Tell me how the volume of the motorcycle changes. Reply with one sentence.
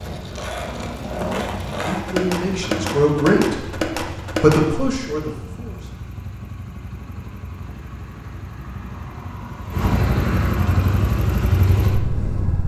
The volume of the motorcycle goes up.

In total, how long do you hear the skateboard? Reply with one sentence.
The skateboard can be heard for 5 seconds in total.